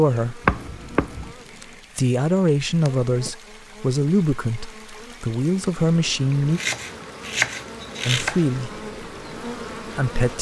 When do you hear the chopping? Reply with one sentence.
You can hear the chopping from 0.5 to 1.4 s and from 6.3 to 8.4 s.